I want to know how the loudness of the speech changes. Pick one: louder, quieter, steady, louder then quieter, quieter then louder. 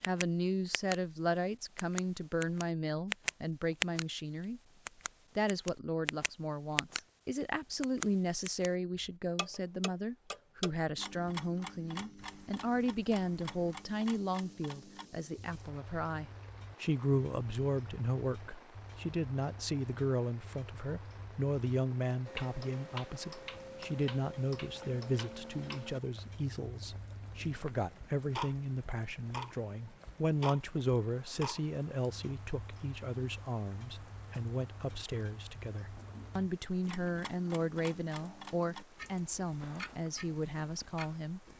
steady.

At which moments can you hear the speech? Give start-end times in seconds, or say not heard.
0.0-4.6, 5.3-41.4.